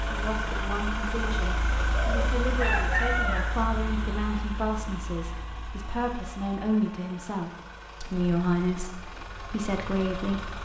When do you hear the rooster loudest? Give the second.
3 s.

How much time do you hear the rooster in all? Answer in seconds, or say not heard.
2 s.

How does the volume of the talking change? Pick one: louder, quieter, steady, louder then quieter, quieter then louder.
louder.